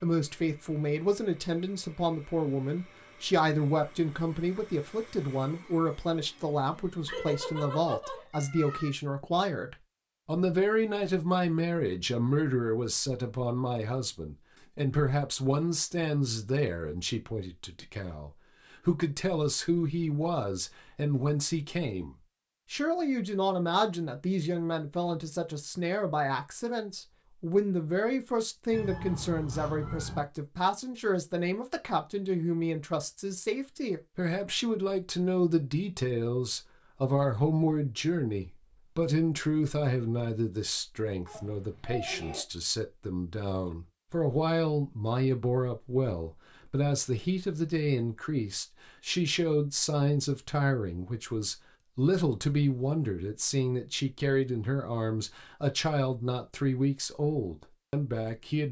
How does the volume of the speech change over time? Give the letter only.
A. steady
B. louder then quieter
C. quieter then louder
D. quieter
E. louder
A.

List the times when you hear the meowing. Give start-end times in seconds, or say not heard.
7.0-8.9, 28.7-30.3, 41.2-42.4.